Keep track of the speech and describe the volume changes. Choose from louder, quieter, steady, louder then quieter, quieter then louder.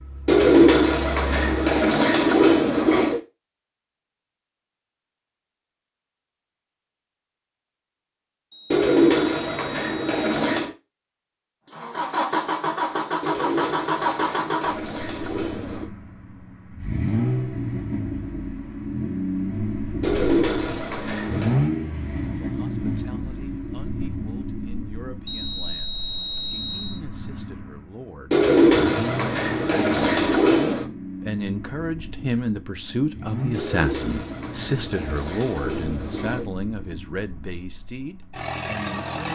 louder then quieter.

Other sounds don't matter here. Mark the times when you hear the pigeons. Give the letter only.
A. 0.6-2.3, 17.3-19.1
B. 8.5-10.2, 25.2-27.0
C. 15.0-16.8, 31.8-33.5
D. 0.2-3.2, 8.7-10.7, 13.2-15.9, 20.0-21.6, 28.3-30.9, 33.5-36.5
D.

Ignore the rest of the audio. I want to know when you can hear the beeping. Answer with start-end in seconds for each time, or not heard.
8.5-10.2, 25.2-27.0.